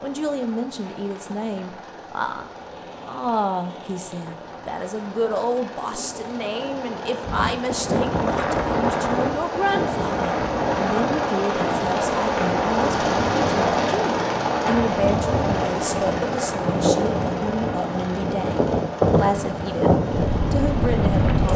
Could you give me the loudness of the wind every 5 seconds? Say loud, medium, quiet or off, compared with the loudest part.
off, loud, medium, loud, loud.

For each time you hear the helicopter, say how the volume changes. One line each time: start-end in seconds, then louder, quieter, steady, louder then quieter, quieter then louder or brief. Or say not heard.
0.0-21.4 louder then quieter.